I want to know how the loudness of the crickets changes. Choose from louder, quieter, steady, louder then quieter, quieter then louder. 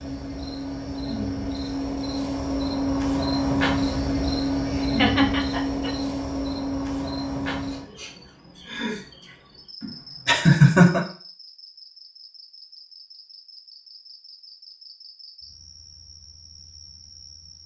quieter.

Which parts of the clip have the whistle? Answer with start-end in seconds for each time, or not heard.
not heard.